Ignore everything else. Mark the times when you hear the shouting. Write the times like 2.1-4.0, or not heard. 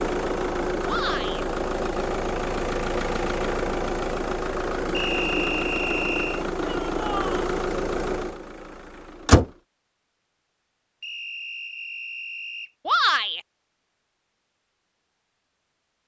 0.8-1.4, 6.6-7.3, 12.8-13.4.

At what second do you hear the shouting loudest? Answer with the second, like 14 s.
13 s.